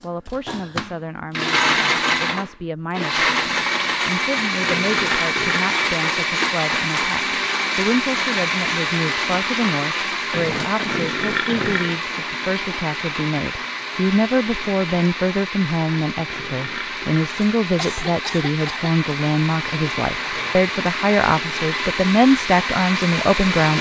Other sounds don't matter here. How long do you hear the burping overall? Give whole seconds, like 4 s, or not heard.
3 s.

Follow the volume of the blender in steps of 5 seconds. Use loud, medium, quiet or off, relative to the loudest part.
loud, loud, medium, medium, loud.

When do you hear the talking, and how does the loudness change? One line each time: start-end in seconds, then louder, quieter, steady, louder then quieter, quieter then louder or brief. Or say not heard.
0.0-23.7 louder.